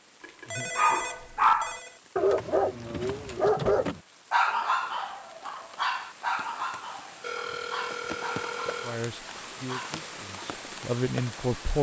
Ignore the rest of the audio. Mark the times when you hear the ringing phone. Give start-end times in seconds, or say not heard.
0.2-2.0, 7.2-9.0.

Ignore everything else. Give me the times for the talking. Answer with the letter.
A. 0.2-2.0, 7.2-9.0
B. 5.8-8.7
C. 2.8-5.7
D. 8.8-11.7
D.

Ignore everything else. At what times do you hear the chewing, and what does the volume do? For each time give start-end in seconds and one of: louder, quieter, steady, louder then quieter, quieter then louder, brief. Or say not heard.
not heard.